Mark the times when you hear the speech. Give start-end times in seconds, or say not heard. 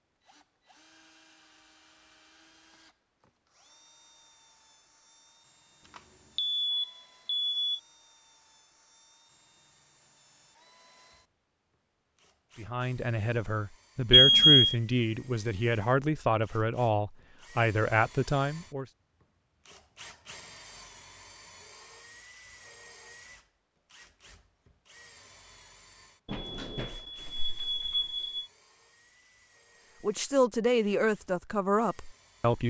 12.6-18.9, 30.0-32.6.